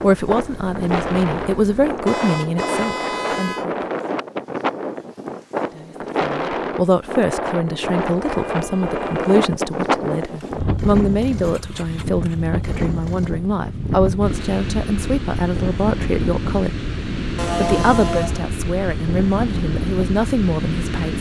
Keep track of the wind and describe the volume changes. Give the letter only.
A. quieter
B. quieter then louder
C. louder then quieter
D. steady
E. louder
D.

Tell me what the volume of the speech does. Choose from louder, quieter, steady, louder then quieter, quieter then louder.
steady.